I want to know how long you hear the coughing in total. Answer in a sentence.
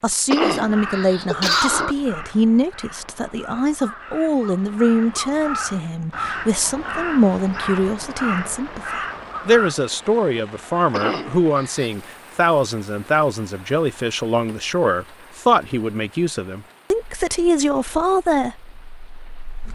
You can hear the coughing for 3 seconds altogether.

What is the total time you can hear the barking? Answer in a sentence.
You can't hear the barking here.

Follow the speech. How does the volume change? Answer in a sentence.
The loudness of the speech stays about the same.